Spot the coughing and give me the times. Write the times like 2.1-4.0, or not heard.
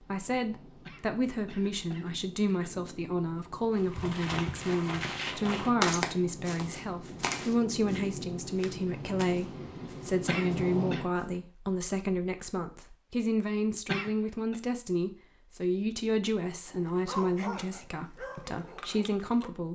0.8-2.7, 10.2-11.1, 13.8-14.6.